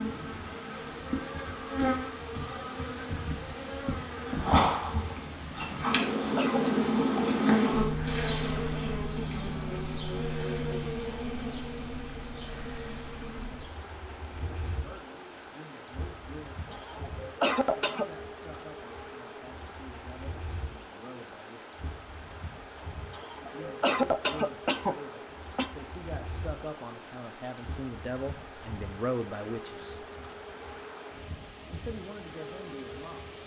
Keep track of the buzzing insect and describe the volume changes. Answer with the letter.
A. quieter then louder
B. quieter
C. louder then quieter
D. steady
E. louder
B.